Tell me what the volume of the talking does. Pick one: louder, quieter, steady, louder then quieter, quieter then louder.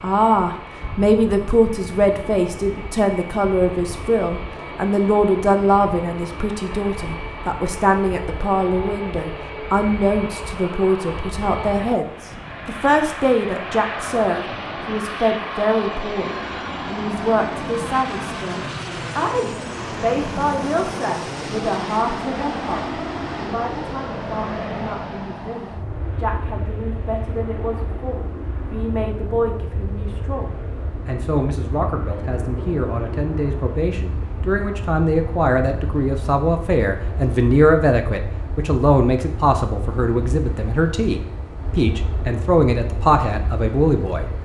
quieter then louder.